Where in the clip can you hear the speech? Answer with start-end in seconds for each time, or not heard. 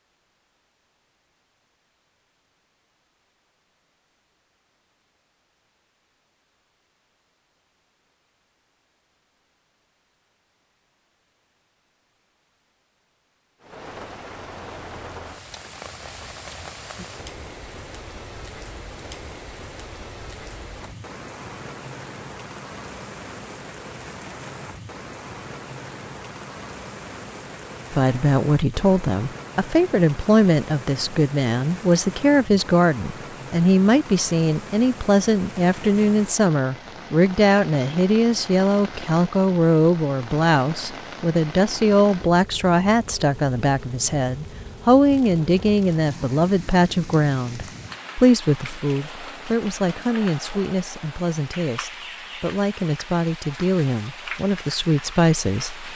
27.9-55.9.